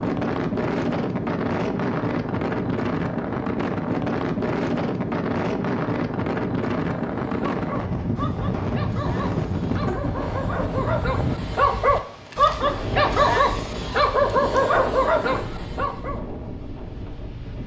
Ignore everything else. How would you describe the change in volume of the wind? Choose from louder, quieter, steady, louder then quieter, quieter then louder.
quieter.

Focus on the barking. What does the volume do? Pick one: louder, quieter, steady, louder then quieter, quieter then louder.
louder.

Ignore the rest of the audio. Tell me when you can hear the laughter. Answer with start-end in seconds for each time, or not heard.
9.7-10.2.